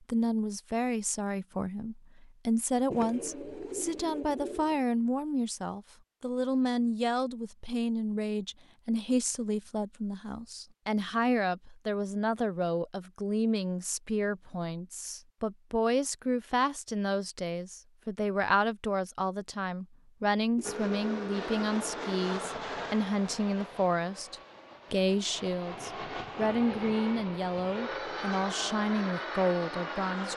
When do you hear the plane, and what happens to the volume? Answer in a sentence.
You can hear the plane from 20.6 to 30.3 s, getting quieter then louder.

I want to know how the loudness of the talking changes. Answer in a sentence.
The volume of the talking stays about the same.